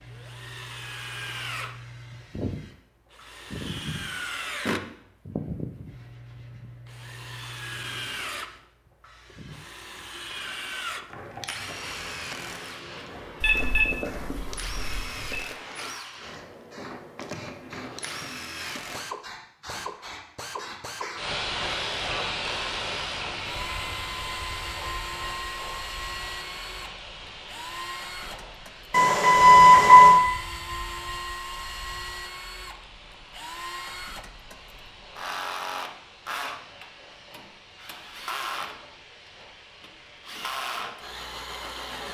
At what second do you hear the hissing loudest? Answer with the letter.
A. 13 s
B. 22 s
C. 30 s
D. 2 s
B.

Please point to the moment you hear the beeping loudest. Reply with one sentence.
The loudest moment of the beeping is at 30 seconds.